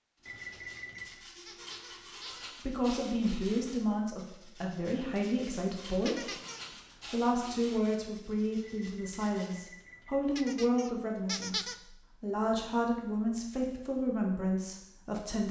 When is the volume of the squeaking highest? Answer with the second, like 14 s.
11 s.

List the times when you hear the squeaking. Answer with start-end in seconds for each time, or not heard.
0.5-2.5, 6.0-6.8, 10.3-11.8.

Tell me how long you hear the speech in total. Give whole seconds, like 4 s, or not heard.
12 s.